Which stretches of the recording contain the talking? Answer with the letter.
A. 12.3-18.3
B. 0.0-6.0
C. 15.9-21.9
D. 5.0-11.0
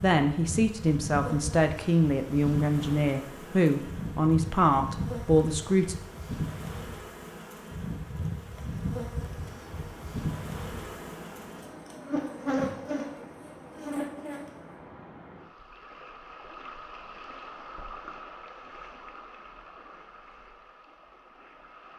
B.